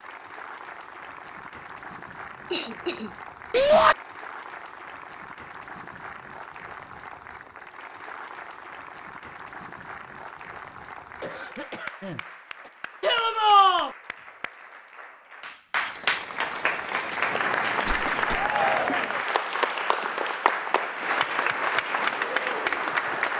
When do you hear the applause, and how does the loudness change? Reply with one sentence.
The applause can be heard from 0.0 to 23.3 s, getting louder.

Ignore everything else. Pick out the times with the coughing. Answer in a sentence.
The coughing can be heard from 2.5 to 3.9 s, from 11.2 to 12.7 s and from 17.9 to 18.5 s.